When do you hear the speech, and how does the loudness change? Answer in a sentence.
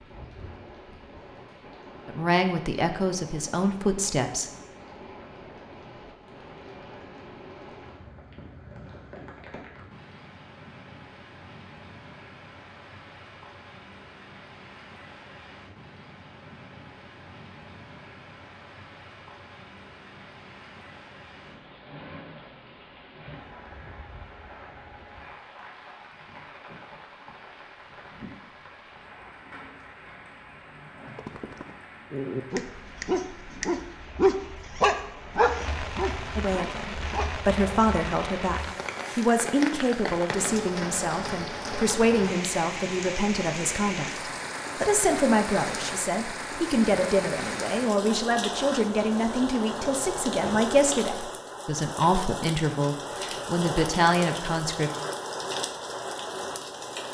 The speech can be heard briefly from 2.0 to 4.5 s; and from 36.4 to 54.9 s, at a steady volume.